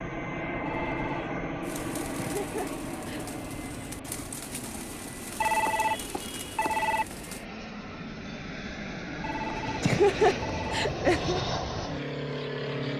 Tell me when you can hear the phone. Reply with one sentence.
The phone can be heard from 0.7 to 1.4 s, from 5.4 to 7.0 s and from 9.2 to 10.9 s.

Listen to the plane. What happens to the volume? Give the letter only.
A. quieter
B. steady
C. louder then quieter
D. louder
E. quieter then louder
E.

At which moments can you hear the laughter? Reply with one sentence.
You can hear the laughter from 2.1 to 3.2 s and from 9.8 to 11.4 s.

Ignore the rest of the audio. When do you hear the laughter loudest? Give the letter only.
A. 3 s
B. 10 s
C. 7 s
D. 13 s
B.